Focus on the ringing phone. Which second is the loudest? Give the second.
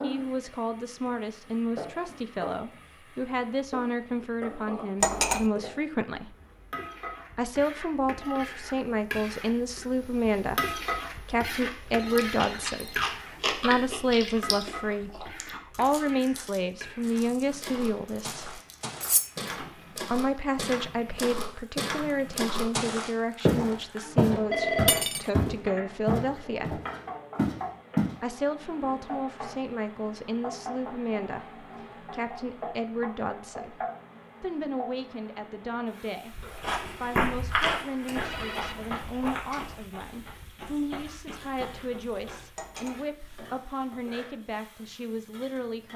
25 s.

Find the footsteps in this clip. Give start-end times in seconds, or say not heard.
17.0-28.1, 36.3-42.8.